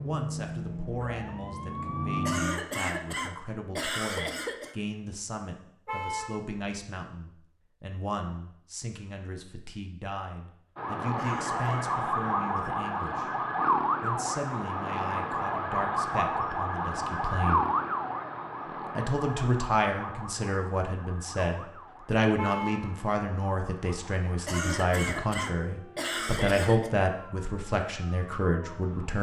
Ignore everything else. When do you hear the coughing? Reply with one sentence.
You can hear the coughing from 2.2 to 4.8 s, from 11.2 to 11.7 s and from 24.4 to 26.9 s.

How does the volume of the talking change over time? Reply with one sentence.
The loudness of the talking goes up.